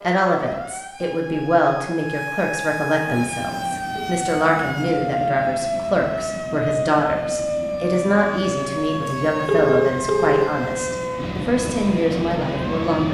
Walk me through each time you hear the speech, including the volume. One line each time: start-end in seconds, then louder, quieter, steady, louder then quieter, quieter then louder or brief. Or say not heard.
0.0-13.0 steady.